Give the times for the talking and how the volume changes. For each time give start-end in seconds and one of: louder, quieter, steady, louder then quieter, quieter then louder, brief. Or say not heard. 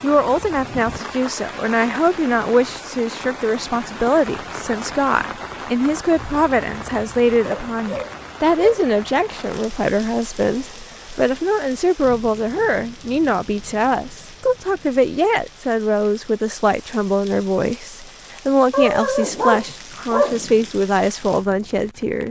0.0-22.2 steady.